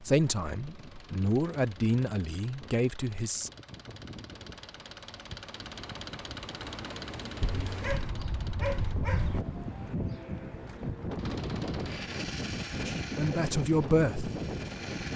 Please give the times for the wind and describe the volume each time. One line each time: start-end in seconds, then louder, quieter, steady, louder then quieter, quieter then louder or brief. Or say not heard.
0.0-15.1 louder.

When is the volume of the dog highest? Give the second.
9 s.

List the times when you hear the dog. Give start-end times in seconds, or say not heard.
7.4-9.4.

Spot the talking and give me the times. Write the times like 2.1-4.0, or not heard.
0.0-3.5, 12.8-14.3.